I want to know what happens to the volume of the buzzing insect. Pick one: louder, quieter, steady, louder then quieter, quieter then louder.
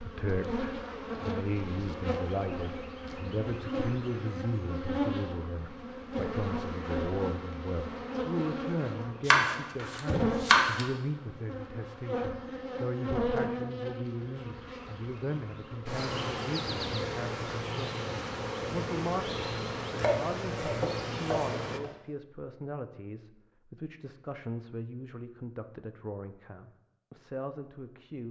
steady.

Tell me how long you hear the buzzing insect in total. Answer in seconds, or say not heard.
22 s.